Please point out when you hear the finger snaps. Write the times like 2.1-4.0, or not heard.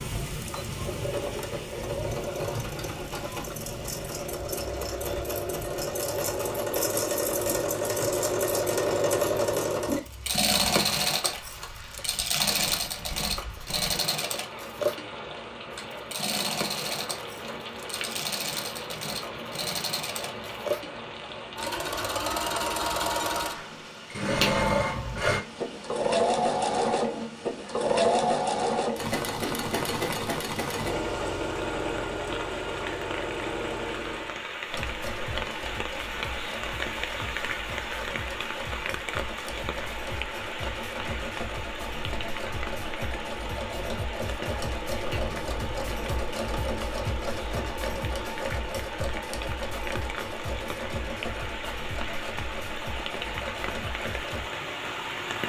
24.4-25.2, 45.1-46.0.